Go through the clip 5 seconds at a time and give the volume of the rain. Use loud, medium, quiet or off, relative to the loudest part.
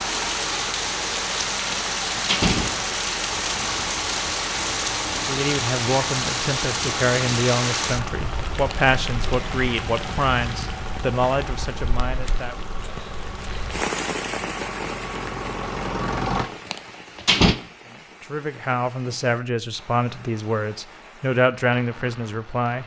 loud, loud, medium, quiet, quiet.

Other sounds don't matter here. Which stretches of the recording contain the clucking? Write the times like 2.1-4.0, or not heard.
not heard.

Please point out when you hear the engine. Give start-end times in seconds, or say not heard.
0.0-16.5.